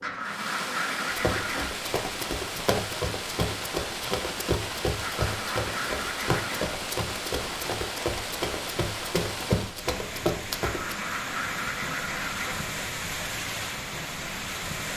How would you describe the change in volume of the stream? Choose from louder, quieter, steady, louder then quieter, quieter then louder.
steady.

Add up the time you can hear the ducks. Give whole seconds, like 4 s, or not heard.
6 s.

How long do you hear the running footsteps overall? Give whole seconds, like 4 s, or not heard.
10 s.